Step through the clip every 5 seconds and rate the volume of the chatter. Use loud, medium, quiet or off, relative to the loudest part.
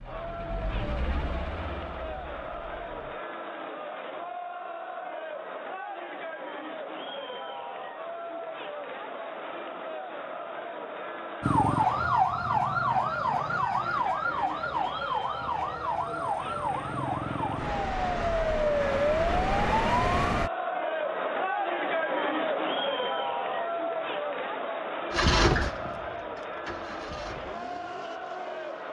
medium, medium, medium, medium, loud, medium.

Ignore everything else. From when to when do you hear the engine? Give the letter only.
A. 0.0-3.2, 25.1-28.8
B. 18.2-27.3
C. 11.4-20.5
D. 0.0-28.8
A.